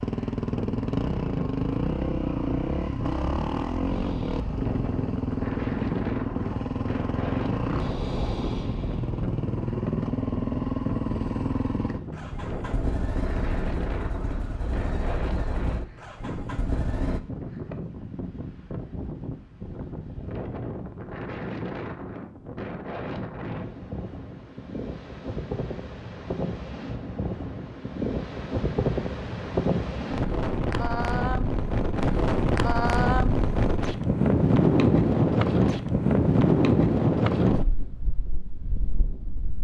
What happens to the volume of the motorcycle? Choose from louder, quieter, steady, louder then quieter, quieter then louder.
quieter.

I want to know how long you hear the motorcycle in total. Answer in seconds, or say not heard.
17 s.